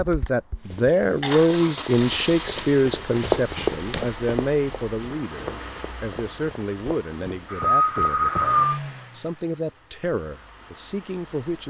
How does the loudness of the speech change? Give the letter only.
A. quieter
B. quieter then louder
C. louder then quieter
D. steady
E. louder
A.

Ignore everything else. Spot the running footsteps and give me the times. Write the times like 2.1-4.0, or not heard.
0.6-8.6.